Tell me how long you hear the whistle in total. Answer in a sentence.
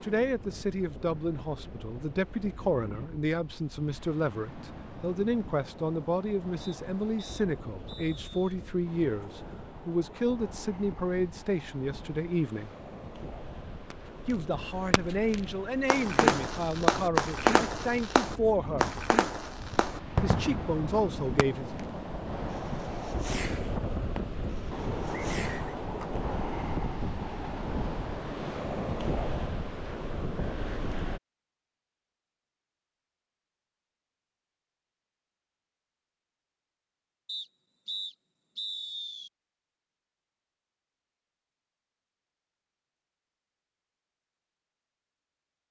You can hear the whistle for 5 seconds altogether.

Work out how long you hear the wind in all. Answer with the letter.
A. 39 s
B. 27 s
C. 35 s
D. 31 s
D.